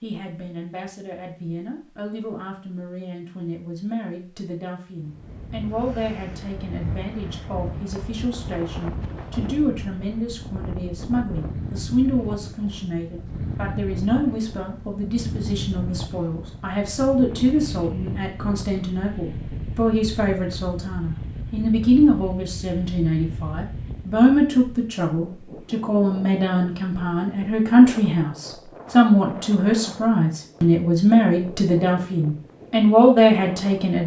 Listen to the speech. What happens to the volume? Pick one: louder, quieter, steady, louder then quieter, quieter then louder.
louder.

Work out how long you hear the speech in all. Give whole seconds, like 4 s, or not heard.
34 s.